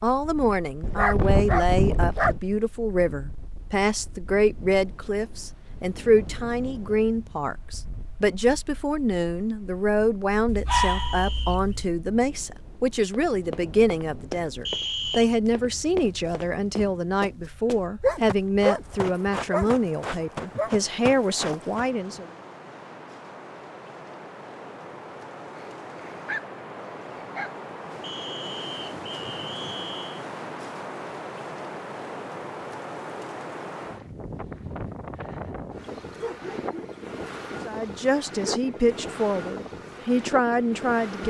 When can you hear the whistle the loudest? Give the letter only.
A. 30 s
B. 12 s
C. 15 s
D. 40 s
C.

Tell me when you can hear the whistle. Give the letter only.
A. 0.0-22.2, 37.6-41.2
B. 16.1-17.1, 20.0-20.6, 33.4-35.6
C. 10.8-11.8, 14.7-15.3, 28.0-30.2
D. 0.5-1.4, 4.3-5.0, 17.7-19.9
C.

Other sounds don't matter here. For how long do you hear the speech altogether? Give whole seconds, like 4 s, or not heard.
26 s.